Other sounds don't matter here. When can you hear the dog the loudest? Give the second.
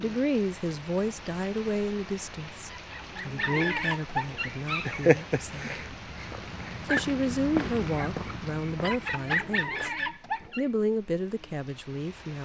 5 s.